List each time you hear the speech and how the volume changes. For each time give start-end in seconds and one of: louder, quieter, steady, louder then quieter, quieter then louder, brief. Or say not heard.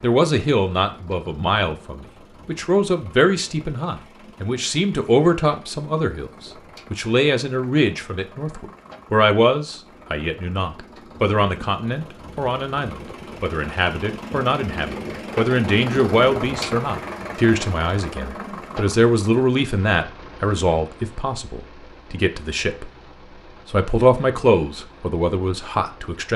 0.0-22.9 steady
23.6-26.3 brief.